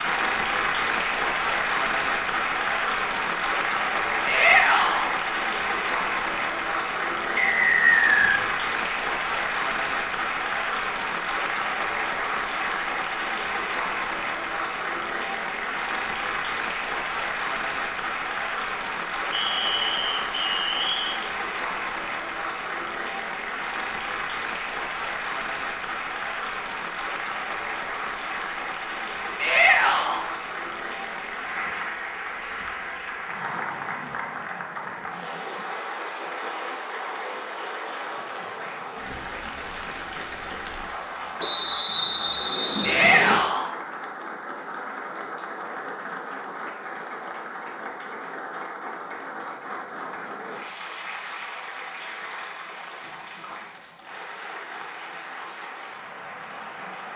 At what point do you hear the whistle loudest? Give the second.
8 s.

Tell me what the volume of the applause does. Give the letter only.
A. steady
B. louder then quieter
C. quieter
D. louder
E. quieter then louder
C.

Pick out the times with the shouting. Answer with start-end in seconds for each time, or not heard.
4.2-5.1, 29.4-30.2, 42.8-43.7.